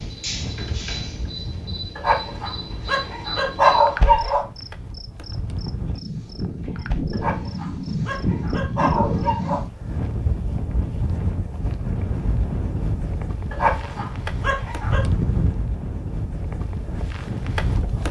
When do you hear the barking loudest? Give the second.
4 s.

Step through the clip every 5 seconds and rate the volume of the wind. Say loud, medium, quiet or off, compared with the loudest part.
medium, loud, loud, loud.